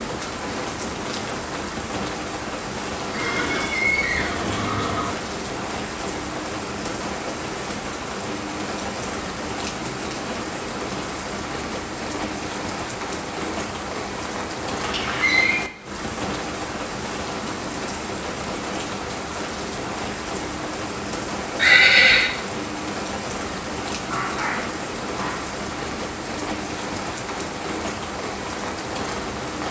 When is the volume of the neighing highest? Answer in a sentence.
The loudest moment of the neighing is at 22 seconds.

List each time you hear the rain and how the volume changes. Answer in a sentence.
The rain can be heard from 0.0 to 29.6 s, at a steady volume.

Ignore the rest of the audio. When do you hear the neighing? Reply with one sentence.
You can hear the neighing from 3.1 to 5.2 s, from 14.8 to 15.6 s and from 21.6 to 22.3 s.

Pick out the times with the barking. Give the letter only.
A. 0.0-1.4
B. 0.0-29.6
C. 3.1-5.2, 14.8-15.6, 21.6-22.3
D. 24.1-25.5
D.